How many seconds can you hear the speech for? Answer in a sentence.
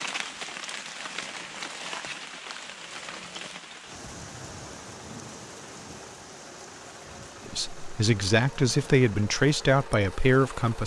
The speech can be heard for 3 seconds in total.